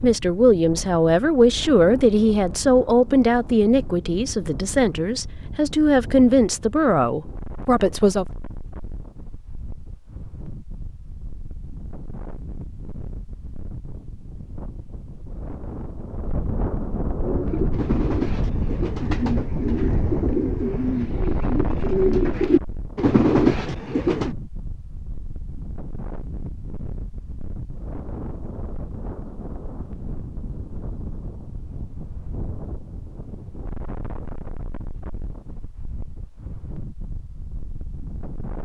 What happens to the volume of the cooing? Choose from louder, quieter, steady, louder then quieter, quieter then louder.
louder.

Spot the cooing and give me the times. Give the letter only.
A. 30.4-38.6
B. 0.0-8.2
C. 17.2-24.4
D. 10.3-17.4
C.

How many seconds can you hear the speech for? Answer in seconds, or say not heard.
8 s.